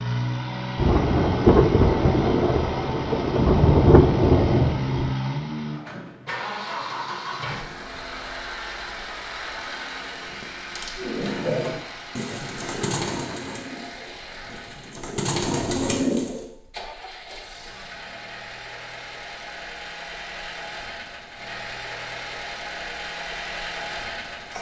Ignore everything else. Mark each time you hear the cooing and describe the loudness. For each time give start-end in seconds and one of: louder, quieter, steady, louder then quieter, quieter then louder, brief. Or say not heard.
10.9-16.4 quieter then louder.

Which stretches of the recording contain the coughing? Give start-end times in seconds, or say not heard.
not heard.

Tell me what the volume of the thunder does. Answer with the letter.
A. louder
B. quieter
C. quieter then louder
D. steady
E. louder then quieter
C.